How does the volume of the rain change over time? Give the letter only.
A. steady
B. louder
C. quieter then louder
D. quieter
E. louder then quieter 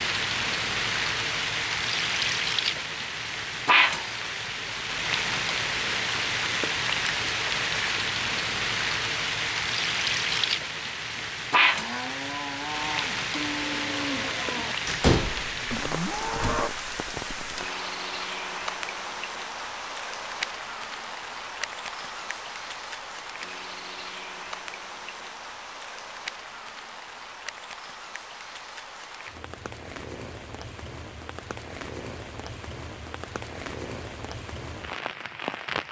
D.